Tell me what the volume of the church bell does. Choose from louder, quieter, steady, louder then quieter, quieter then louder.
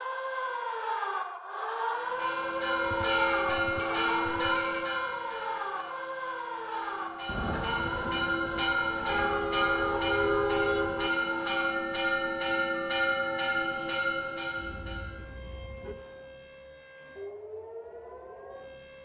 quieter then louder.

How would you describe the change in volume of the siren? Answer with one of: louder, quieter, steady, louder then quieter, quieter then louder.
quieter.